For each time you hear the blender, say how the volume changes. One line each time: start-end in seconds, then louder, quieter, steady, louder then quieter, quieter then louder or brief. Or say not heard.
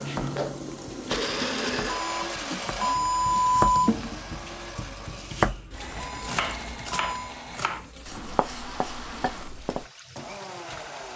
0.1-11.1 quieter.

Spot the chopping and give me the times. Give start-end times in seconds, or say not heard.
0.1-9.8.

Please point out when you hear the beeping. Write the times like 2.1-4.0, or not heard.
1.9-3.9, 6.0-7.3.